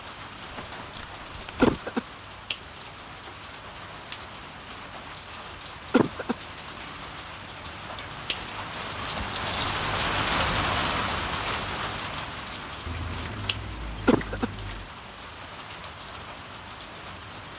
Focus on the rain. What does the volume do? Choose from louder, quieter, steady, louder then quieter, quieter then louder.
louder then quieter.